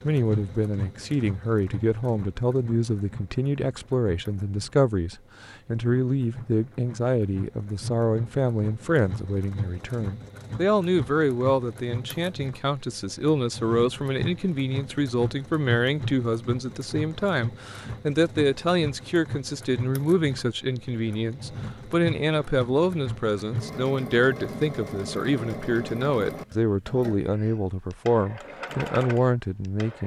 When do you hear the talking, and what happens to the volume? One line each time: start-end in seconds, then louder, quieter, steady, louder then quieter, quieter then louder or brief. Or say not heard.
0.0-30.0 steady.